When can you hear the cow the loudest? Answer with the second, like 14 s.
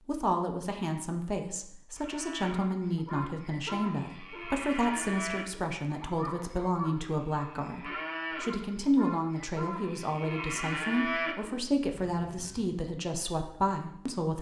11 s.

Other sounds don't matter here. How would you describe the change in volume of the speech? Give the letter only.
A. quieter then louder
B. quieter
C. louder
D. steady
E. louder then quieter
D.